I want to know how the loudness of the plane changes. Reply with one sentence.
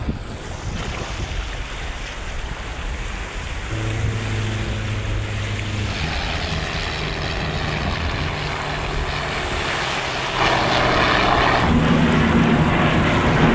The loudness of the plane goes up.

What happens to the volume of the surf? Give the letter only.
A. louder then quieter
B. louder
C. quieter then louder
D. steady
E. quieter
D.